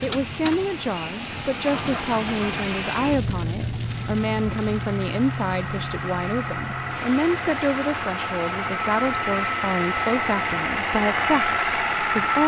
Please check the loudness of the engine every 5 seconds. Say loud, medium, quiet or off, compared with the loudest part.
medium, medium, loud.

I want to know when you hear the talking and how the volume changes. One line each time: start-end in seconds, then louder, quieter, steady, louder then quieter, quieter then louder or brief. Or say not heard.
0.0-12.4 steady.